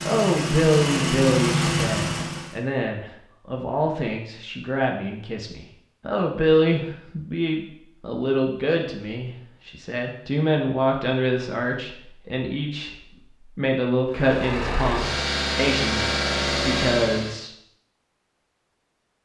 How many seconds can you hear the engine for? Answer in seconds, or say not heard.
6 s.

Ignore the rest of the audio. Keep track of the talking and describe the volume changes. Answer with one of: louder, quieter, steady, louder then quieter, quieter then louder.
steady.